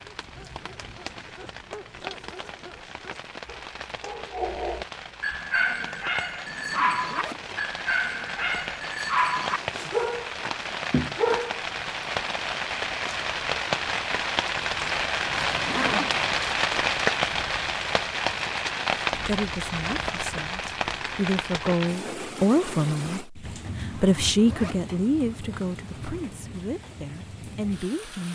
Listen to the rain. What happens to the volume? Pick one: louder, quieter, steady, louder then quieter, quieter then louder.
louder then quieter.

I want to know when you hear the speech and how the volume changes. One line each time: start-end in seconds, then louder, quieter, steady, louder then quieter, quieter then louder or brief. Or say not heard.
19.2-28.3 louder then quieter.